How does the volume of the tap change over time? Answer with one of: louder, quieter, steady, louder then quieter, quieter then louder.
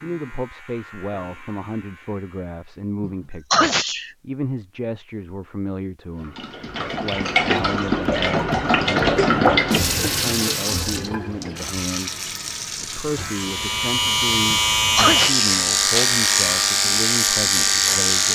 quieter.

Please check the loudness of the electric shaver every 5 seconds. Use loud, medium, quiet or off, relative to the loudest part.
quiet, off, loud, loud.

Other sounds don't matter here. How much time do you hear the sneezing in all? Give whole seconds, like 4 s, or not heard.
2 s.